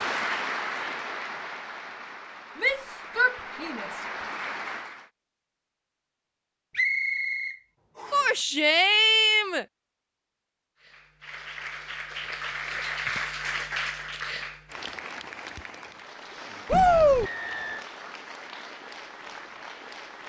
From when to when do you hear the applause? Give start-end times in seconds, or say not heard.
0.0-5.0, 10.8-20.2.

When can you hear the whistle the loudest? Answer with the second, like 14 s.
7 s.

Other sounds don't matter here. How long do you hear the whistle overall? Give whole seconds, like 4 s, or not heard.
2 s.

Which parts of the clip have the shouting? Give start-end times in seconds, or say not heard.
2.5-4.0, 8.1-9.7, 16.7-17.3.